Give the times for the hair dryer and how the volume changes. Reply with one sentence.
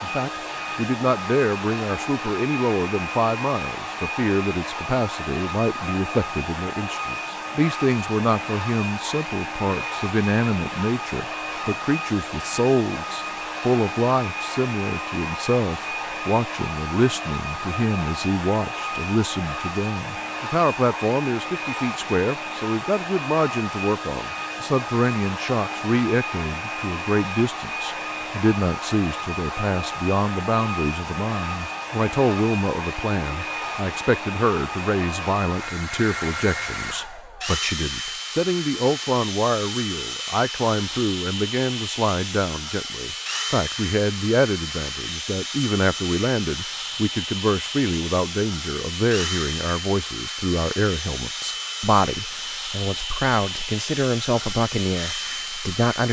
You can hear the hair dryer from 0.0 to 56.0 s, at a steady volume.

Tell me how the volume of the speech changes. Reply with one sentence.
The volume of the speech stays about the same.